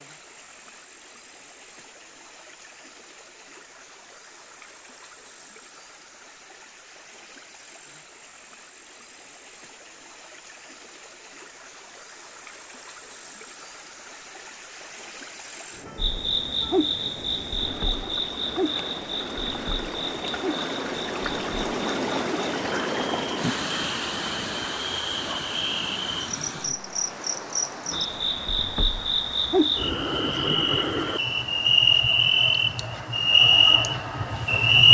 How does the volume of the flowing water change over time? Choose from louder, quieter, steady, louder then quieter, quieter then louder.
louder then quieter.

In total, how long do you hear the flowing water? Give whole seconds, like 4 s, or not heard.
35 s.